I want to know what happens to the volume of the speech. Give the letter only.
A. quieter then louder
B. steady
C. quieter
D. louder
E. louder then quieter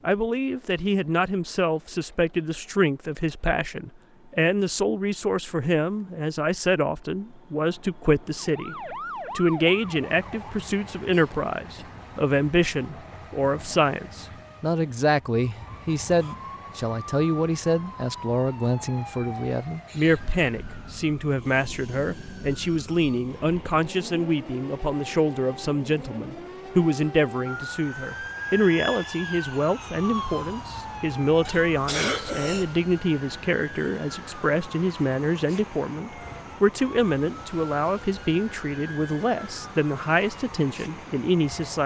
B.